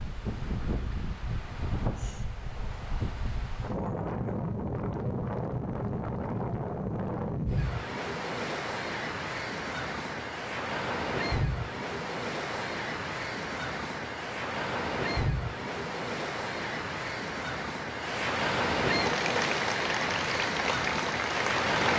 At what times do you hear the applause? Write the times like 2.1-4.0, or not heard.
19.0-21.7.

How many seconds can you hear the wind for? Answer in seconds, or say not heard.
22 s.